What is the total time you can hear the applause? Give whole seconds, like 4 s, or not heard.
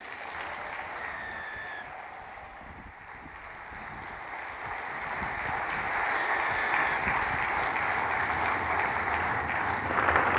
10 s.